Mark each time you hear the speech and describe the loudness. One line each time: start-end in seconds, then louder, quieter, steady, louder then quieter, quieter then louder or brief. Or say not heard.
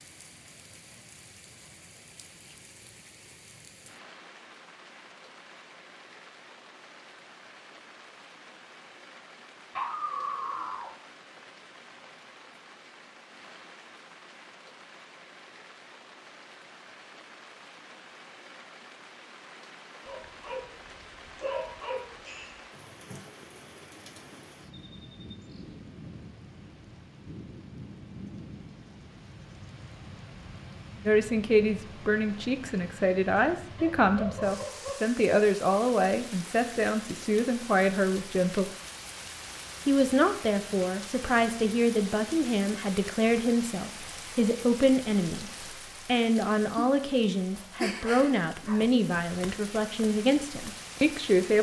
31.1-38.7 steady
39.9-51.5 steady.